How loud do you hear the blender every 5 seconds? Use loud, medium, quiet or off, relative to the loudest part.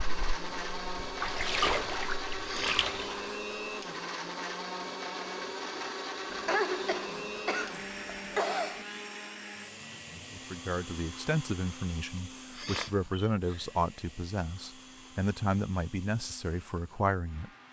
loud, loud, medium, quiet.